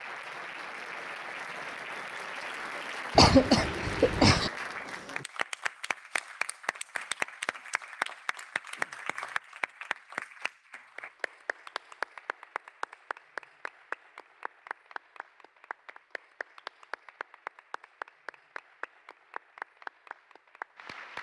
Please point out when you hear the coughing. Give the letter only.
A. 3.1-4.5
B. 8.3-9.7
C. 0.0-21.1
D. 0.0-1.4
A.